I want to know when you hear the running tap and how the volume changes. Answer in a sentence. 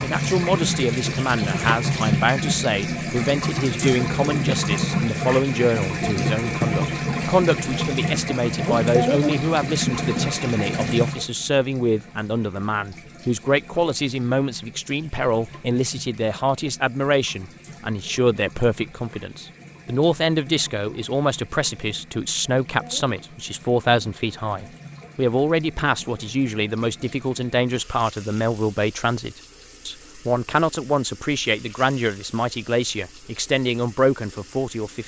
You can hear the running tap from 0.0 to 35.0 s, getting quieter.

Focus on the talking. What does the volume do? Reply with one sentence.
The loudness of the talking stays about the same.